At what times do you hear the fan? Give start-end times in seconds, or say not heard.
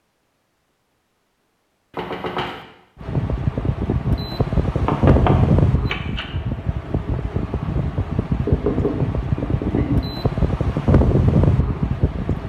3.0-12.4.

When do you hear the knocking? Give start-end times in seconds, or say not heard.
1.9-2.6, 4.8-6.2, 8.4-10.0.